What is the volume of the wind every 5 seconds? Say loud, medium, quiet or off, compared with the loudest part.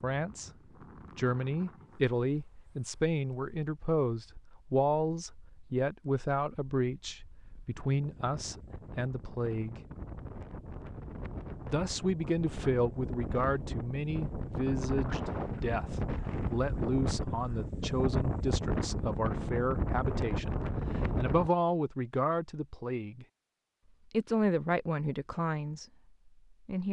quiet, quiet, medium, loud, loud, off.